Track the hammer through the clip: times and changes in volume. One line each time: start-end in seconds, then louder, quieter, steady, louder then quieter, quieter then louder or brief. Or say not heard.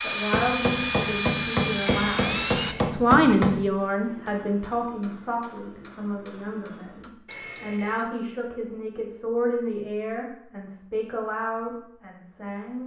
0.3-7.2 quieter.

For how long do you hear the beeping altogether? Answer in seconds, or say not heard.
2 s.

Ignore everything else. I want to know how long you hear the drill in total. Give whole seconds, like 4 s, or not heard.
3 s.